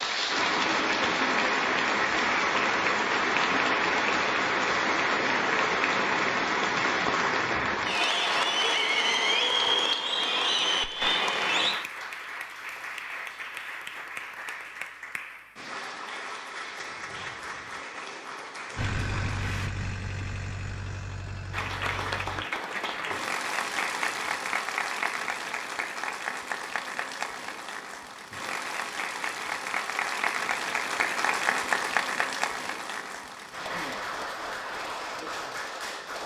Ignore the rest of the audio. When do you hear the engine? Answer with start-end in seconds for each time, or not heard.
18.8-22.4.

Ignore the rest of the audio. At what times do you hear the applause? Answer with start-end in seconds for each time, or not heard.
0.0-19.7, 21.5-36.2.